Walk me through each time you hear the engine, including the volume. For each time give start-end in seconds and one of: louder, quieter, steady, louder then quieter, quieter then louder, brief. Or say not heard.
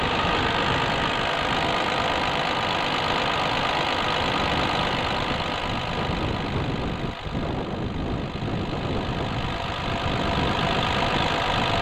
0.0-11.7 quieter then louder.